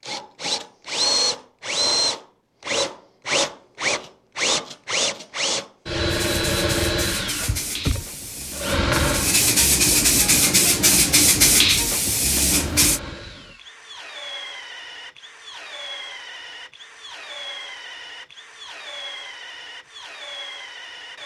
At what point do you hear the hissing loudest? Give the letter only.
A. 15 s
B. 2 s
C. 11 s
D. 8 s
C.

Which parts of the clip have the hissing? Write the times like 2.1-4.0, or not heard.
6.0-13.0.